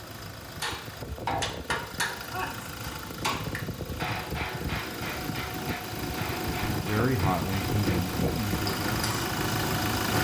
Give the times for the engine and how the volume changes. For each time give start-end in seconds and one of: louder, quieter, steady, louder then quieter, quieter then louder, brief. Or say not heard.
0.0-10.1 louder.